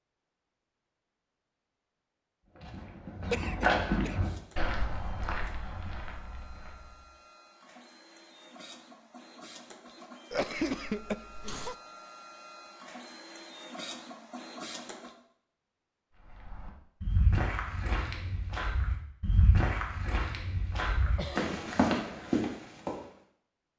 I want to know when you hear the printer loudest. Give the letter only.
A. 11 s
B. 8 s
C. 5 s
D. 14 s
D.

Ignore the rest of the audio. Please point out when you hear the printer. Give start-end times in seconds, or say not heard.
4.1-15.2.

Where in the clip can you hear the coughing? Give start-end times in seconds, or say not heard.
3.3-4.2, 10.3-11.8, 21.1-21.6.